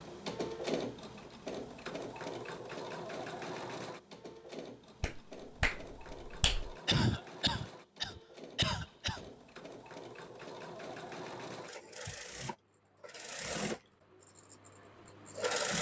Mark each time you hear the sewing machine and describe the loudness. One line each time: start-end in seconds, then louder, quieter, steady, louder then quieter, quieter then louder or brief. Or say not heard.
0.0-15.7 quieter then louder.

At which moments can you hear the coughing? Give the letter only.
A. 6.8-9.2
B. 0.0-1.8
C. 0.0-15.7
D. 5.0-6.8
A.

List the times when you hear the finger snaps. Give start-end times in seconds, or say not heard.
5.0-6.8.